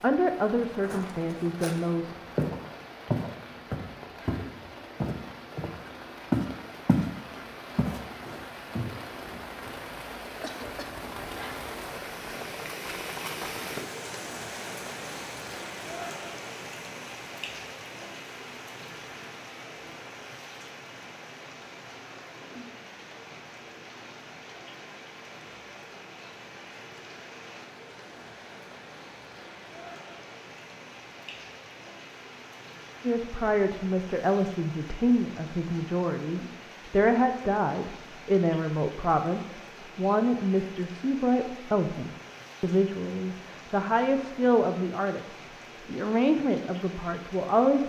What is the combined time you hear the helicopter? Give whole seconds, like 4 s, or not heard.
not heard.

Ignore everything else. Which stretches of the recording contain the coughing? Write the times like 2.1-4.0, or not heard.
9.9-11.0.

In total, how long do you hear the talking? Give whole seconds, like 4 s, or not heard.
17 s.